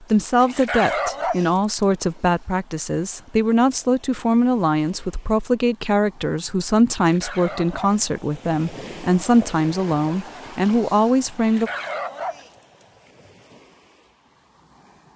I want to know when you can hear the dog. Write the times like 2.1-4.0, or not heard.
0.4-1.6, 7.0-8.1, 11.3-12.8.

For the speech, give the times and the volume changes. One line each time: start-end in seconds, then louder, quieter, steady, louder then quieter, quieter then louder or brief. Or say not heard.
0.0-11.7 steady.